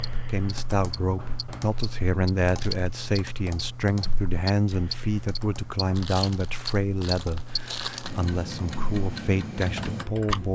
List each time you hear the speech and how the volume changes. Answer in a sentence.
The speech can be heard from 0.0 to 10.5 s, at a steady volume.